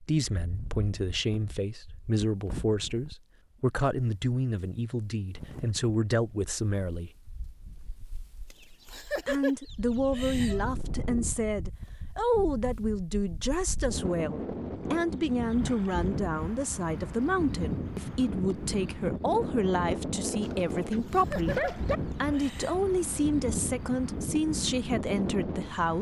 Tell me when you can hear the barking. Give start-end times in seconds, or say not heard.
20.4-22.0.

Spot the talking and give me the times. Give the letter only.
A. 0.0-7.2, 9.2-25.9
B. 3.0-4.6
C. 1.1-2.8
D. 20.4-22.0
A.